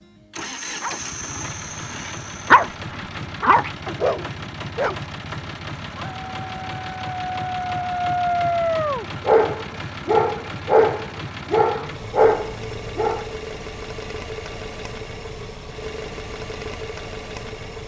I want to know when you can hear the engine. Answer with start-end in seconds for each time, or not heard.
0.0-17.8.